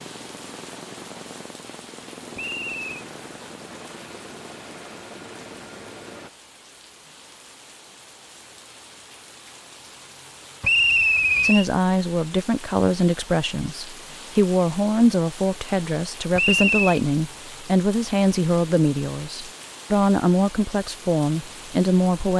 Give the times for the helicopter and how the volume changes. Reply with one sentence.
The helicopter can be heard from 0.0 to 6.3 s, at a steady volume.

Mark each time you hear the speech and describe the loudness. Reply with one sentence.
You can hear the speech from 11.4 to 22.3 s, at a steady volume.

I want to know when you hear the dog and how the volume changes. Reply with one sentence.
The dog can't be heard in this clip.